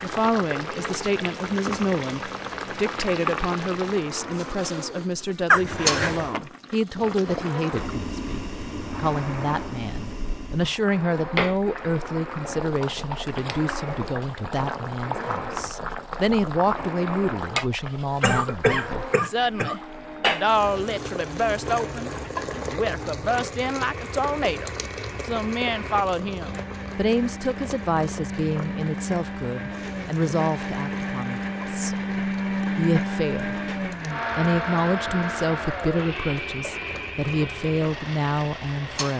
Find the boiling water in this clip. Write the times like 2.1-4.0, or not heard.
0.0-39.1.